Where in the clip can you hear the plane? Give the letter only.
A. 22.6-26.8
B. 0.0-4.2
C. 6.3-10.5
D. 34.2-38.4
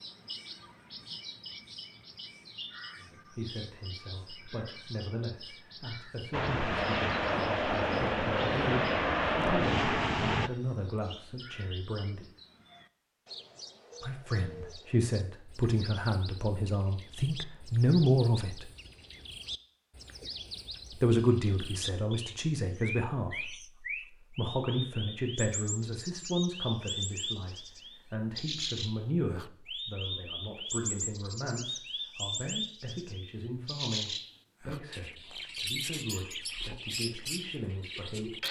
C.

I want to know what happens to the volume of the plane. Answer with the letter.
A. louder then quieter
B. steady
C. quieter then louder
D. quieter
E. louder
B.